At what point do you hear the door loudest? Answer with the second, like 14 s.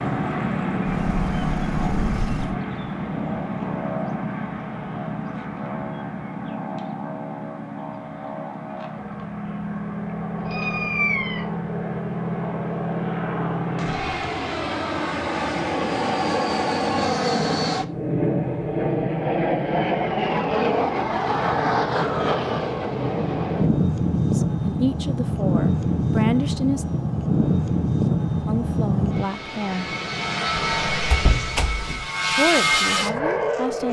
31 s.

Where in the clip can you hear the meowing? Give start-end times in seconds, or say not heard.
10.3-11.4.